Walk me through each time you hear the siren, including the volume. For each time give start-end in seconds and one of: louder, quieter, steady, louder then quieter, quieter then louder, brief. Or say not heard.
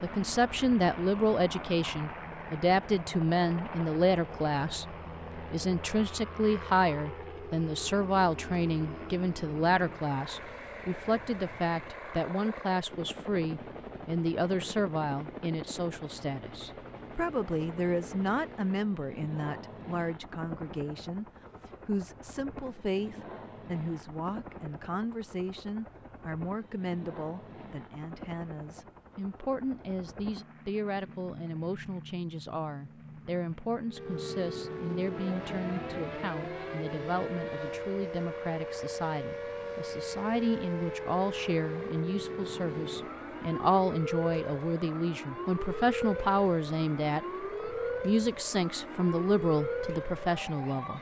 33.9-50.9 steady.